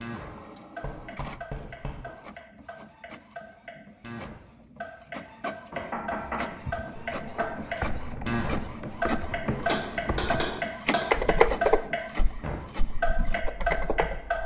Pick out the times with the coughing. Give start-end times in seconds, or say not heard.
not heard.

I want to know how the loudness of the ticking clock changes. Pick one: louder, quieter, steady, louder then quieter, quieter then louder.
louder.